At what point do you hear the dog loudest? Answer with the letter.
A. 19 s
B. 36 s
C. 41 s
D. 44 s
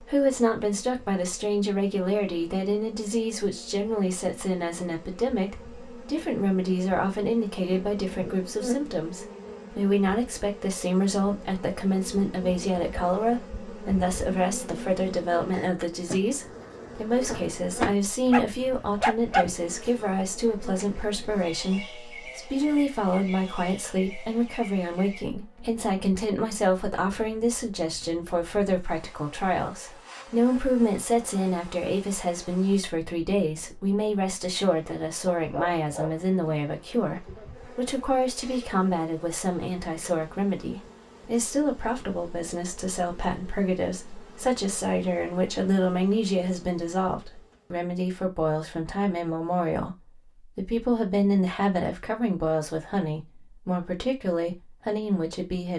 A.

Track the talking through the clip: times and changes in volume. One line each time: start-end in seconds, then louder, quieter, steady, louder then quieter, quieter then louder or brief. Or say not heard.
0.0-55.7 steady.